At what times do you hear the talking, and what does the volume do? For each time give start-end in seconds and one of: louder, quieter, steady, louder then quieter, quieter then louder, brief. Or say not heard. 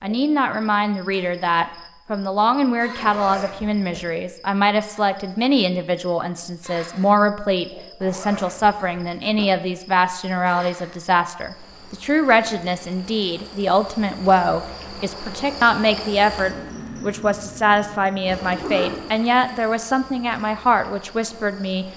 0.0-21.9 steady.